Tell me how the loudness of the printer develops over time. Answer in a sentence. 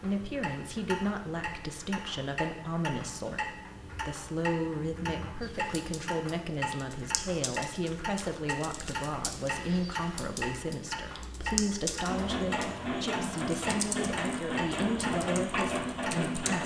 The volume of the printer stays about the same.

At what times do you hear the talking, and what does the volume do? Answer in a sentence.
The talking can be heard from 0.0 to 16.6 s, at a steady volume.